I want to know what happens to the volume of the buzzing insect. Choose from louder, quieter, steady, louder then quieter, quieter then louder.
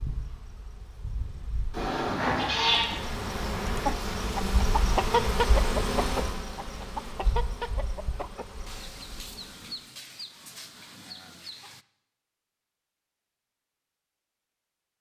louder then quieter.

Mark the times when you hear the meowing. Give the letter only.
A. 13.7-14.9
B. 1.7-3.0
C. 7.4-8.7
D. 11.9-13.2
B.